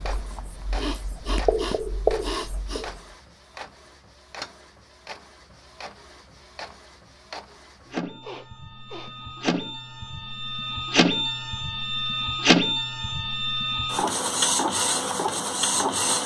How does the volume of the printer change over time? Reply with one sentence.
The volume of the printer goes up.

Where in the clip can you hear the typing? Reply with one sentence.
You can't hear the typing here.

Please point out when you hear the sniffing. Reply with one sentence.
You can hear the sniffing from 0.7 to 2.9 s and from 8.2 to 9.2 s.